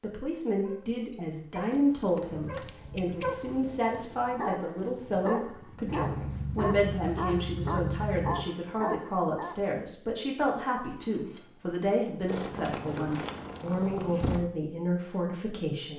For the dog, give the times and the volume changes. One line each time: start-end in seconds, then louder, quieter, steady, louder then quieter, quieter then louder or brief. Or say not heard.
0.6-9.6 louder.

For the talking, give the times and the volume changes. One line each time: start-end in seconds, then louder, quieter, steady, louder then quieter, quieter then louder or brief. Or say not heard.
0.0-15.9 steady.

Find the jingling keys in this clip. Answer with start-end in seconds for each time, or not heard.
1.7-2.8, 5.8-8.4, 10.8-11.9.